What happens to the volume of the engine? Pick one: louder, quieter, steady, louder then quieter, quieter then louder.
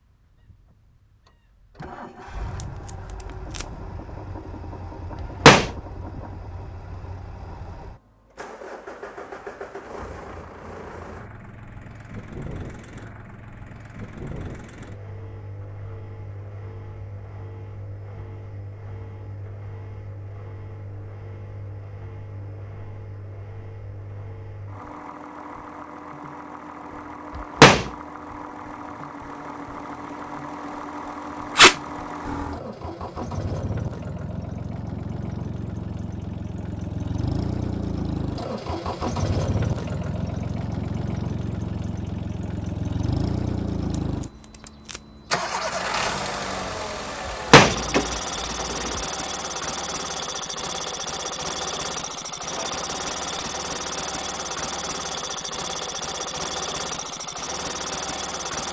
louder.